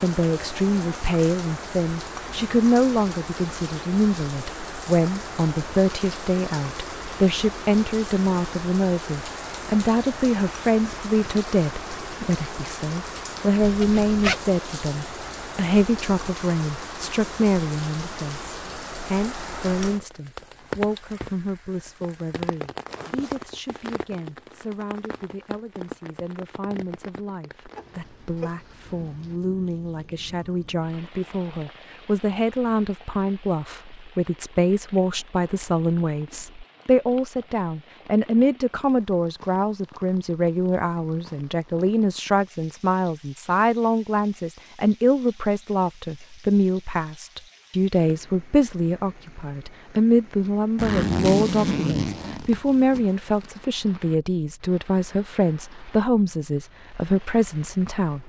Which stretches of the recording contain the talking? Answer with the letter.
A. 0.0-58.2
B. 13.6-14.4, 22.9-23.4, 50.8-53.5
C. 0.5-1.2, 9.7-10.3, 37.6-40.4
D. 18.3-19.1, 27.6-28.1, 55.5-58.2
A.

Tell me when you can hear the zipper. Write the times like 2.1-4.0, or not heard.
13.6-14.4, 22.9-23.4, 50.8-53.5.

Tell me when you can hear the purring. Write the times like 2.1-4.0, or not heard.
not heard.